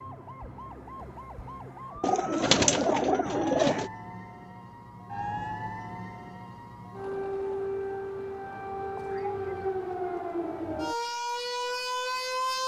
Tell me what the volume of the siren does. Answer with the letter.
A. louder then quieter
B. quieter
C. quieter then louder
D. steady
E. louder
E.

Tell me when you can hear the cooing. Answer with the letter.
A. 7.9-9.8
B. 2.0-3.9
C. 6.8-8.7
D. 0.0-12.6
B.